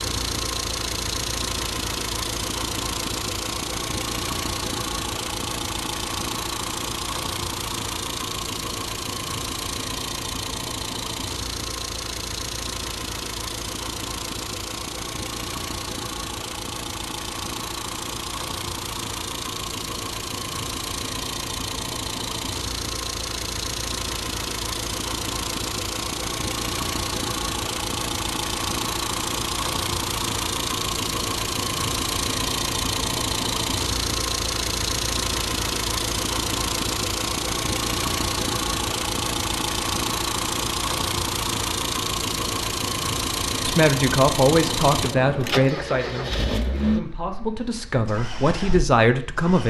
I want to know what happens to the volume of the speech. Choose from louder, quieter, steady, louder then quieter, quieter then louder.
quieter then louder.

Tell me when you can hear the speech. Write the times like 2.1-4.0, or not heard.
43.6-49.6.